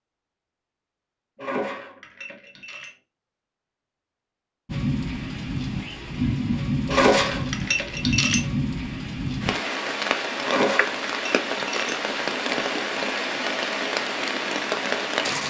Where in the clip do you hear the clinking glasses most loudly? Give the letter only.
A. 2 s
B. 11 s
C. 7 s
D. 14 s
C.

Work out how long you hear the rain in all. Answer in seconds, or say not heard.
11 s.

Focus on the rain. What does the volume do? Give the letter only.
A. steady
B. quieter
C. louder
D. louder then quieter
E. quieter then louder
A.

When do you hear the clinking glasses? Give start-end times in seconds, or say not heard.
1.4-3.0, 6.8-8.4, 10.4-12.0.